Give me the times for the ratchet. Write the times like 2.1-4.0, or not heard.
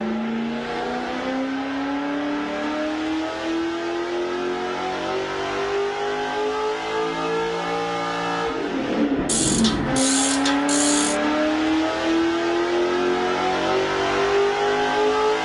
9.2-11.2.